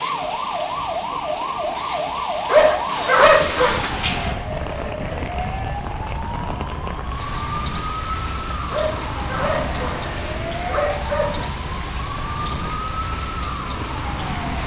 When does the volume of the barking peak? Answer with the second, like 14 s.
3 s.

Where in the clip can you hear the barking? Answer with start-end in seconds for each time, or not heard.
2.5-4.3, 8.7-11.5.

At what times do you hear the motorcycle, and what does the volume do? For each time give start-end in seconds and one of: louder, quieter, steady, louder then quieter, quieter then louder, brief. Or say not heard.
not heard.